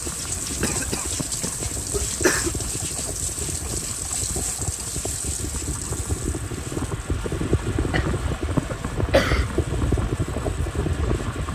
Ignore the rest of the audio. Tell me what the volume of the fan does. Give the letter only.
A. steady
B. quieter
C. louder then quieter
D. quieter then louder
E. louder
E.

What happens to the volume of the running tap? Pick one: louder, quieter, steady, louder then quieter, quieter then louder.
quieter.